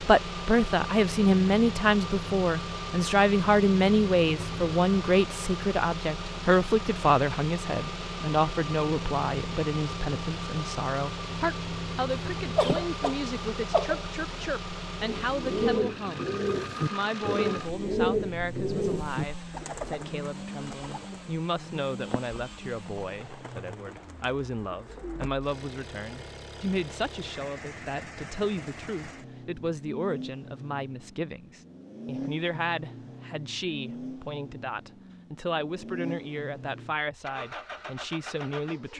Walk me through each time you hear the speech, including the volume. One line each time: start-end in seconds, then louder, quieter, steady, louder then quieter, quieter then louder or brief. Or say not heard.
0.0-38.9 quieter.